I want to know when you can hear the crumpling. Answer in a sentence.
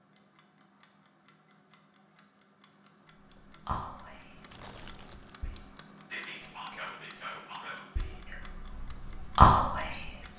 The crumpling can be heard from 4.5 to 5.4 s.